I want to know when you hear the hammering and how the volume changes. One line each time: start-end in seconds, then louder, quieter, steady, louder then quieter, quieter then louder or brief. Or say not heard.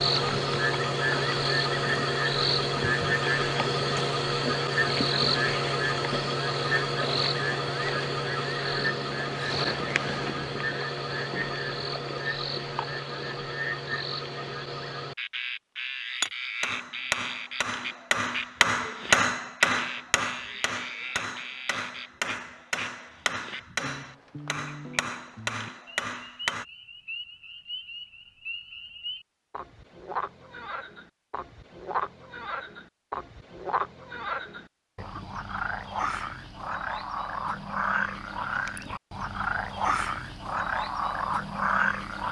16.2-26.6 louder then quieter.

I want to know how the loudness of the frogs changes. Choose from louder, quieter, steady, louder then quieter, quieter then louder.
quieter then louder.